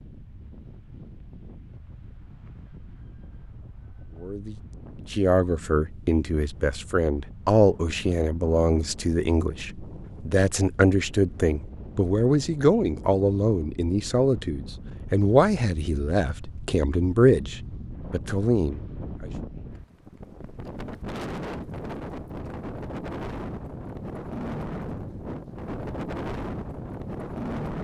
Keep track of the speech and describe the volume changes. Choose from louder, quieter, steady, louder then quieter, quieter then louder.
steady.